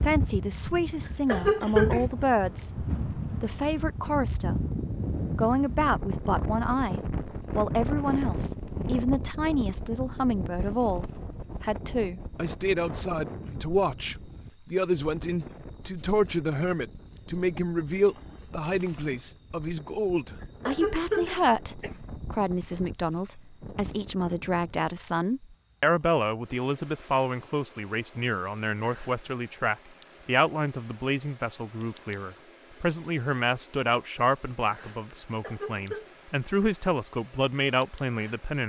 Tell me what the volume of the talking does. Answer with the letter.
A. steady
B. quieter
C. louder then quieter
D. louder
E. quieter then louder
A.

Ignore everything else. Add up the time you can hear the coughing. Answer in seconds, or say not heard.
3 s.